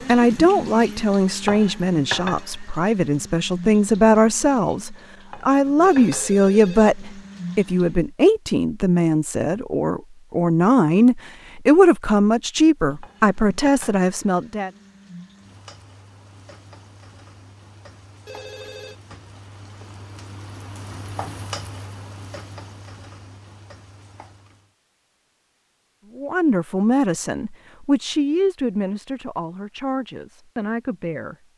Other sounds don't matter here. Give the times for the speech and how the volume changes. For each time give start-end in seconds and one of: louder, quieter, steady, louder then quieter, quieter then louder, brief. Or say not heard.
0.1-14.7 steady
26.1-31.4 quieter.